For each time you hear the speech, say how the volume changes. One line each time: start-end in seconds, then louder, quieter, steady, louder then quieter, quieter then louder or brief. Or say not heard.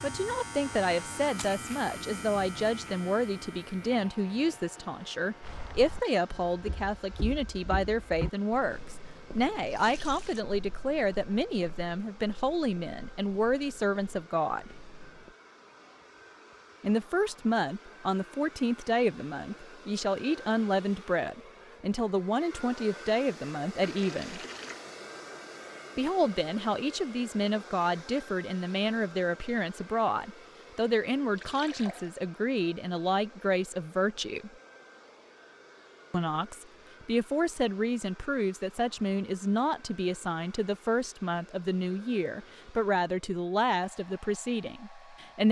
0.0-14.7 steady
16.8-24.4 steady
25.9-34.5 steady
36.1-45.4 steady.